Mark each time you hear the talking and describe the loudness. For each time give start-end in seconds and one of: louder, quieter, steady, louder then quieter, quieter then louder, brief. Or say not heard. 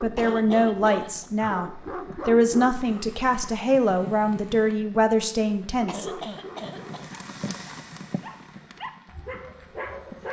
0.0-6.0 steady.